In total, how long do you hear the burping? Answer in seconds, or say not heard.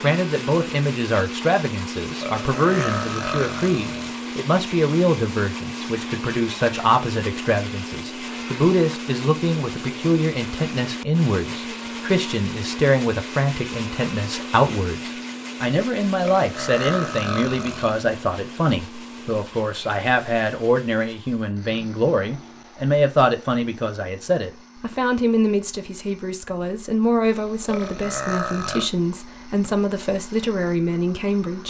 5 s.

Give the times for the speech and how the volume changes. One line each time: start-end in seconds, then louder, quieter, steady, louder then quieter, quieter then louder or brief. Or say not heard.
0.0-31.6 steady.